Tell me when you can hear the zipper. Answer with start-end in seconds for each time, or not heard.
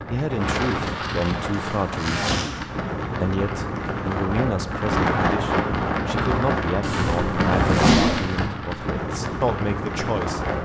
1.6-2.5, 6.8-8.4.